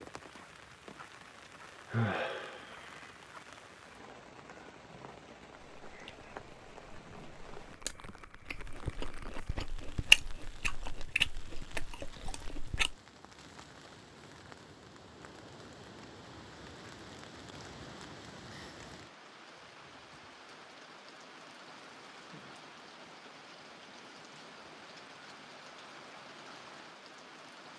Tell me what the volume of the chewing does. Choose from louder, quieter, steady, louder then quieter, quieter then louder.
louder then quieter.